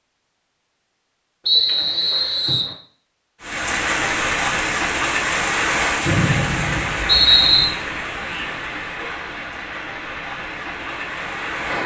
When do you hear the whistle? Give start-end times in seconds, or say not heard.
1.4-2.8, 6.0-7.7.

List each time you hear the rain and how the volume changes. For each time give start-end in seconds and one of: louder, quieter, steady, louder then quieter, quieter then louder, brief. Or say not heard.
3.4-11.8 quieter.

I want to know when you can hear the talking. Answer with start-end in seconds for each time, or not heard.
not heard.